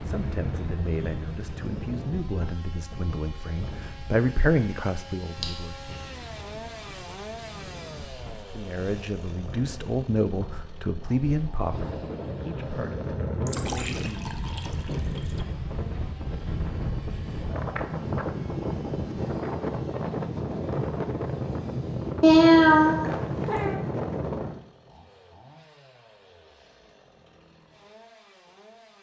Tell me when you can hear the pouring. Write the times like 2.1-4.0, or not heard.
13.4-15.4.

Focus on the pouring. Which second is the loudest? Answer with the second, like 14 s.
14 s.